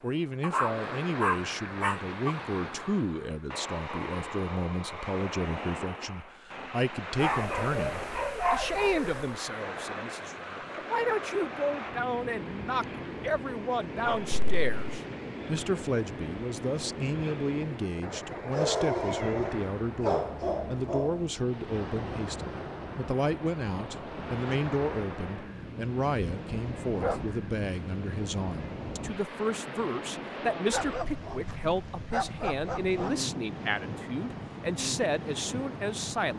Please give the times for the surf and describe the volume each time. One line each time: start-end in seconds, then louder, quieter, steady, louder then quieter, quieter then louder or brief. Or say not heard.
0.0-36.3 steady.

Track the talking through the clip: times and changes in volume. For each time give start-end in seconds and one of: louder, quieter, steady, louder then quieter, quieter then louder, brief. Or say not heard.
0.0-36.3 steady.